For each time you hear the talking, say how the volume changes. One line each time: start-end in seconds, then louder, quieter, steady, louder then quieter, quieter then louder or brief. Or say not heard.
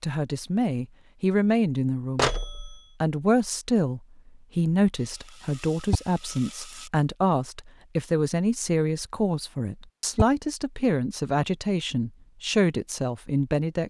0.0-2.3 brief
3.0-13.8 steady.